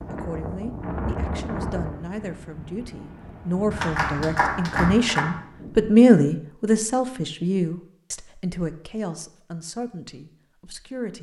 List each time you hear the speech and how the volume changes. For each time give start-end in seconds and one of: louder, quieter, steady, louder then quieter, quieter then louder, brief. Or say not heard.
0.1-11.1 louder then quieter.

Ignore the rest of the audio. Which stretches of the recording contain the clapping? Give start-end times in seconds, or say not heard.
3.7-5.2.